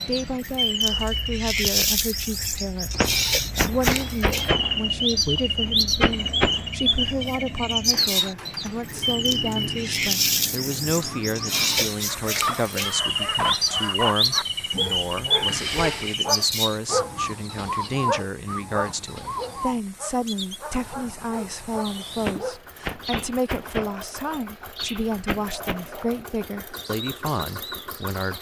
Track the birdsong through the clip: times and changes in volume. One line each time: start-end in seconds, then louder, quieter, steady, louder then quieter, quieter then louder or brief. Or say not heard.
0.0-28.3 quieter.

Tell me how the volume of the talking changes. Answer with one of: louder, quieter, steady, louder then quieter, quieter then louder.
steady.